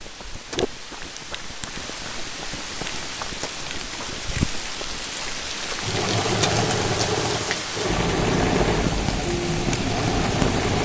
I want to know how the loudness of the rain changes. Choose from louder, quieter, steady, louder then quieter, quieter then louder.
louder.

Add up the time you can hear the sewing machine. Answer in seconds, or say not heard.
5 s.